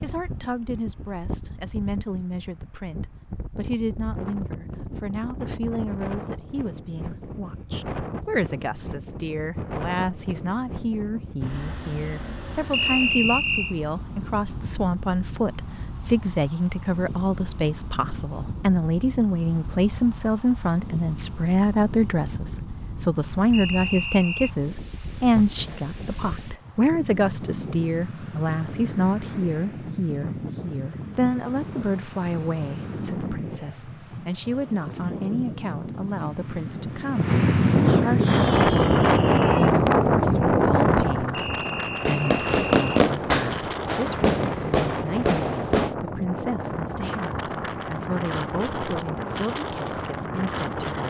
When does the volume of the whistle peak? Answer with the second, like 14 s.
13 s.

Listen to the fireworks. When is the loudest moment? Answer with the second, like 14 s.
43 s.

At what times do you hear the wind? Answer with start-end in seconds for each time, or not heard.
0.0-51.0.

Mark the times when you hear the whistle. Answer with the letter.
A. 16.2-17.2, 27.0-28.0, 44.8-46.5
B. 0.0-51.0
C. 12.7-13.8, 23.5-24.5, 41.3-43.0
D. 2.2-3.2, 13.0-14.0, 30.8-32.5
C.